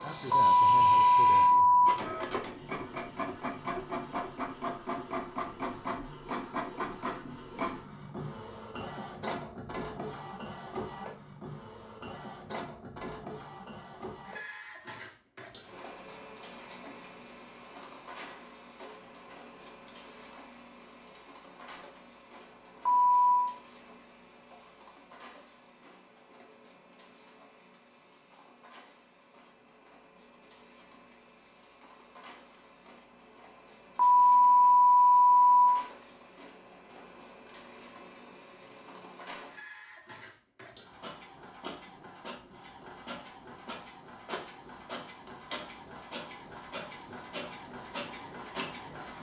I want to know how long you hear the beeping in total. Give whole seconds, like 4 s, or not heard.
4 s.